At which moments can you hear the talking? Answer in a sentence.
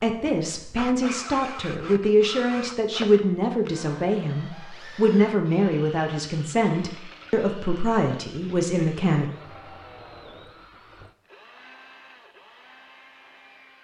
The talking can be heard from 0.0 to 9.3 s.